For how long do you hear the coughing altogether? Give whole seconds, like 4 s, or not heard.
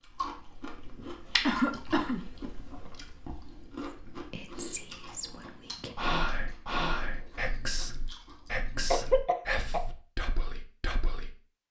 2 s.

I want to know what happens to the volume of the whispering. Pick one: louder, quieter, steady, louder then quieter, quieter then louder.
louder then quieter.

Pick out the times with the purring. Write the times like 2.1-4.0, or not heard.
not heard.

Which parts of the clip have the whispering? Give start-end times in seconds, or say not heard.
4.3-11.6.